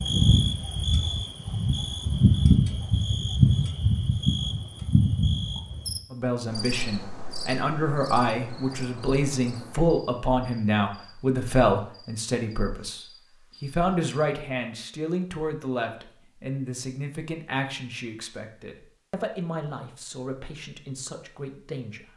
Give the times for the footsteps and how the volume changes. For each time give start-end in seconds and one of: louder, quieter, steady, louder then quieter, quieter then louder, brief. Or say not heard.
not heard.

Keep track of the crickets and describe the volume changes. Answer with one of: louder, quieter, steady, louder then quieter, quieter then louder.
quieter.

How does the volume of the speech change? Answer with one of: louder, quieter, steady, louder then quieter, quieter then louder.
quieter.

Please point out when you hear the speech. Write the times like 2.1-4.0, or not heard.
6.1-22.1.